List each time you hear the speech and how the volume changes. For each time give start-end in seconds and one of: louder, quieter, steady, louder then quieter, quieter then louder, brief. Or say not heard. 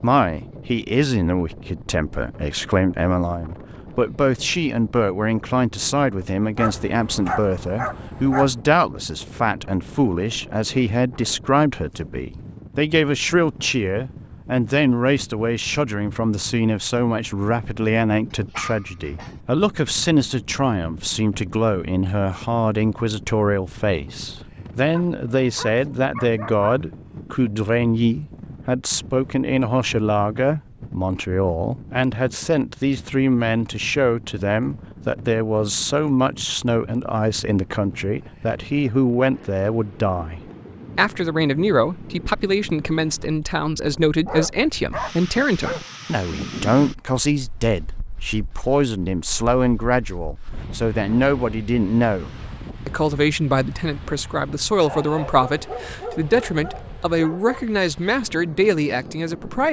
0.0-59.6 steady.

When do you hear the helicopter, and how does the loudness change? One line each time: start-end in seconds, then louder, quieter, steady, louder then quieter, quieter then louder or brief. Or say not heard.
not heard.